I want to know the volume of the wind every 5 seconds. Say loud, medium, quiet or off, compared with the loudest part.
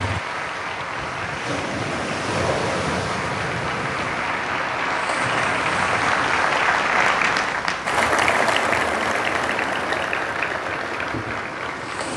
loud, medium, medium.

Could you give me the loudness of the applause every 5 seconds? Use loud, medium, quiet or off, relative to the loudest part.
medium, loud, medium.